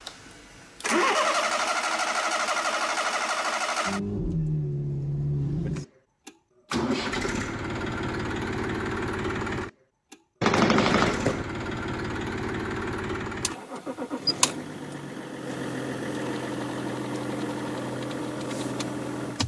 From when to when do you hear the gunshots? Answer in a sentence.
You can hear the gunshots from 10.4 to 11.4 s.